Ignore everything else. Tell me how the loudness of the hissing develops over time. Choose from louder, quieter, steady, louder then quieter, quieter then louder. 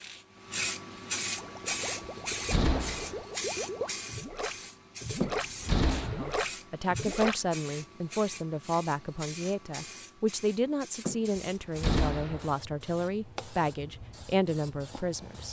quieter.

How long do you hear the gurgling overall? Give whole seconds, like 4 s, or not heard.
6 s.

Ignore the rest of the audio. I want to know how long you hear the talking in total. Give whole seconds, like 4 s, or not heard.
9 s.